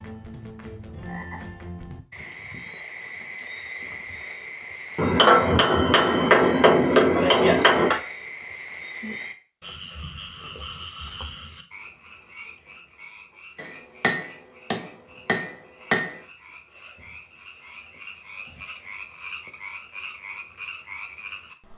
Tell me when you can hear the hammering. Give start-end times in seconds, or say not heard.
5.0-8.0, 13.6-16.2.